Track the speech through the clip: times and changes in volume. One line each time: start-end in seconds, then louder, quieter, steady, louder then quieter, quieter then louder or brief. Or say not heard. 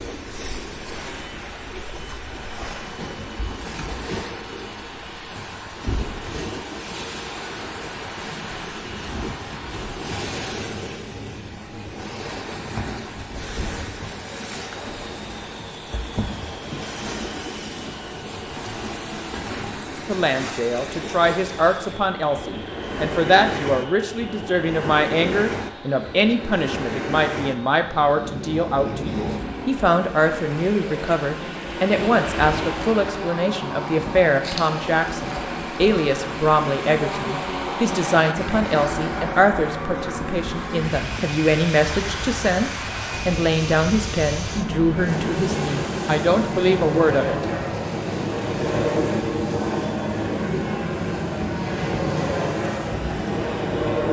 20.1-47.5 steady.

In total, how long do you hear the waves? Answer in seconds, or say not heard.
54 s.